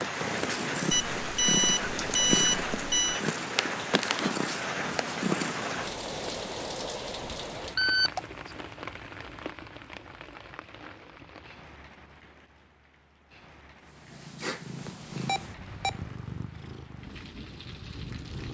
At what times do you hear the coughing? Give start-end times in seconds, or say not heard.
not heard.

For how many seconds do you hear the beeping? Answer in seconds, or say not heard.
4 s.